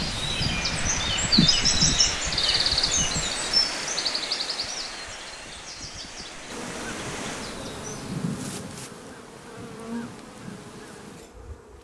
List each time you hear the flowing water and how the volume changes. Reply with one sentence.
You can hear the flowing water from 0.0 to 7.6 s, getting quieter.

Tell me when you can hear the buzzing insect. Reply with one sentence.
The buzzing insect can be heard from 6.5 to 11.7 s.